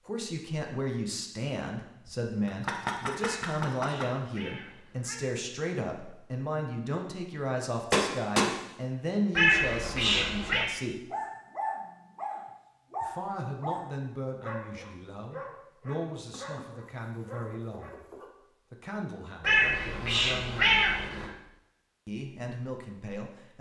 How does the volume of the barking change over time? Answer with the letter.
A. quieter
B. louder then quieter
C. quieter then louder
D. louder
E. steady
A.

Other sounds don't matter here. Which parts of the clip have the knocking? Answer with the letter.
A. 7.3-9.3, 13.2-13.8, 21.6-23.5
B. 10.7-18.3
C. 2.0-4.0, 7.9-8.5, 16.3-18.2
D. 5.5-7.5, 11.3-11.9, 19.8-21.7
C.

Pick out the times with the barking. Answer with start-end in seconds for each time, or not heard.
10.7-18.3.